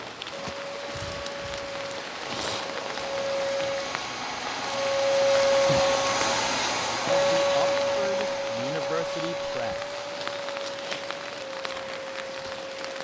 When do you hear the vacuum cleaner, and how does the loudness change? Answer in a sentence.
The vacuum cleaner can be heard from 0.2 to 12.9 s, getting louder then quieter.